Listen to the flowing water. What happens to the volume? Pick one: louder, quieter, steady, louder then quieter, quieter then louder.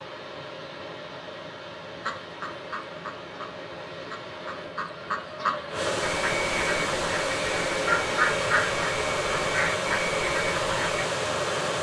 louder.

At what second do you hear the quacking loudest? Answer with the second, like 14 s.
8 s.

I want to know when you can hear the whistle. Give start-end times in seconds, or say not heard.
not heard.